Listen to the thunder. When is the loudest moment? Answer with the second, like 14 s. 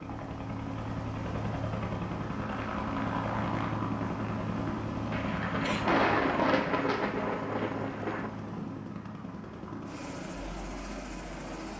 6 s.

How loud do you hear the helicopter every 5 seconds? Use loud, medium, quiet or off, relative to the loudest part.
loud, loud, medium.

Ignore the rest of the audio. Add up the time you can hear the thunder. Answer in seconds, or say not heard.
3 s.